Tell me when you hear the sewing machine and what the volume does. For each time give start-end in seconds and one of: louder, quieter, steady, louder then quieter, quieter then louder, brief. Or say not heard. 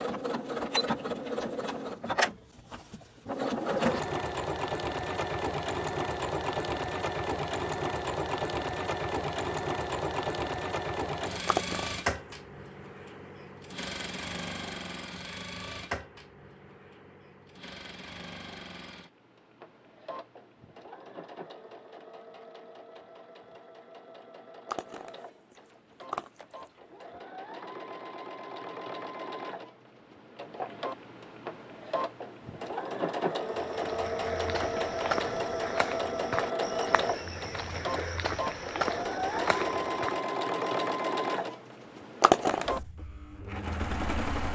0.0-44.5 quieter then louder.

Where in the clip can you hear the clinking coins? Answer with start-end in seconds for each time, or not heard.
11.4-11.9, 24.6-27.1, 42.2-42.6.